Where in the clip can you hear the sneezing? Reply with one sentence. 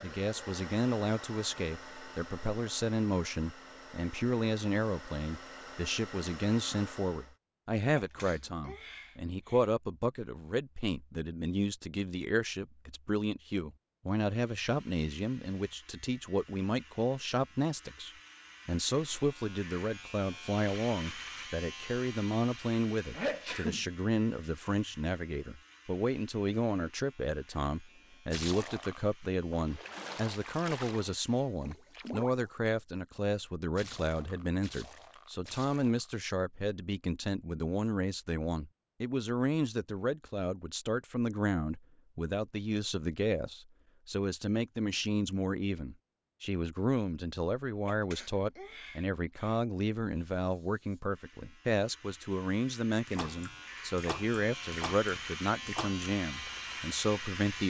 You can hear the sneezing from 8.0 to 9.7 s, from 23.1 to 23.9 s and from 47.9 to 49.6 s.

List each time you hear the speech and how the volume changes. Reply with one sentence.
You can hear the speech from 0.0 to 57.6 s, at a steady volume.